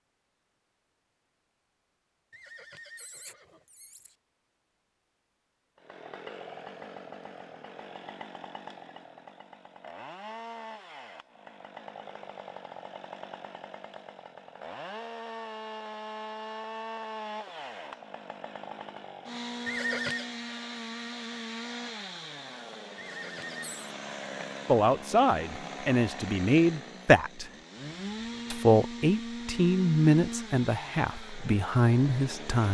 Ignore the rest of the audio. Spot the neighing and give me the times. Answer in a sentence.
The neighing can be heard from 2.3 to 4.1 s, from 19.6 to 20.3 s and from 22.9 to 23.9 s.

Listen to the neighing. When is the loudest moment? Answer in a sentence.
The loudest moment of the neighing is at 20 seconds.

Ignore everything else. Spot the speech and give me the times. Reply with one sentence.
The speech can be heard from 24.6 to 27.5 s and from 28.5 to 32.6 s.